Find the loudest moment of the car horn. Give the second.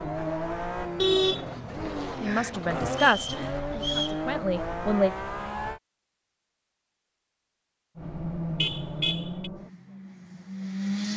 1 s.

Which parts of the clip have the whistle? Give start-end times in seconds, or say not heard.
2.9-4.2.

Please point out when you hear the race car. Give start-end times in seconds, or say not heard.
0.0-5.8, 8.0-11.1.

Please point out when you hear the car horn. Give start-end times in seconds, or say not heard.
1.0-2.9, 8.6-9.5.